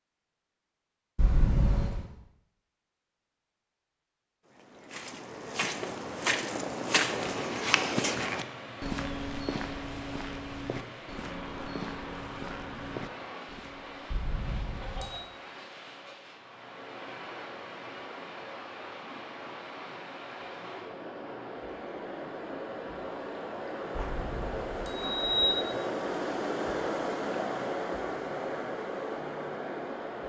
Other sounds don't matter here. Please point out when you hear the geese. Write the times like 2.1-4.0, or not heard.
not heard.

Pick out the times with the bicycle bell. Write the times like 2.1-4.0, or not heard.
1.1-2.0, 14.1-15.2, 23.9-25.6.